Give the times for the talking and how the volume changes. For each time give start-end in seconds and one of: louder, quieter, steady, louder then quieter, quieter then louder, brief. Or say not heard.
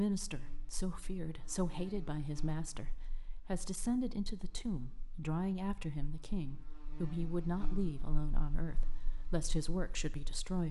0.0-10.6 steady.